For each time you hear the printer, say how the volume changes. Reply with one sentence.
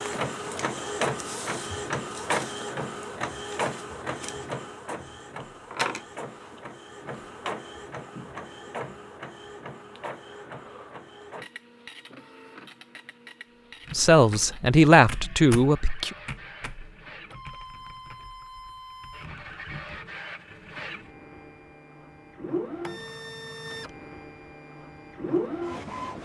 You can hear the printer from 0.0 to 26.2 s, getting quieter then louder.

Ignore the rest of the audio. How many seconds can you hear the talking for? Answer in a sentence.
The talking can be heard for 2 seconds in total.